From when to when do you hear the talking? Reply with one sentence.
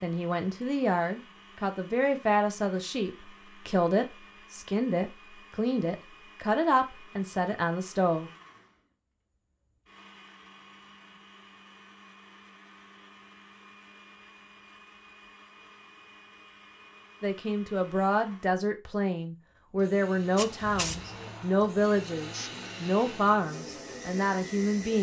The talking can be heard from 0.0 to 8.3 s and from 17.2 to 24.9 s.